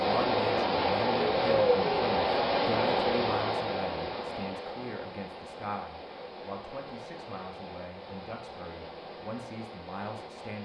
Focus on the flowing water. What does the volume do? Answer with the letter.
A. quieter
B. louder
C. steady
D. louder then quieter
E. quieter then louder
A.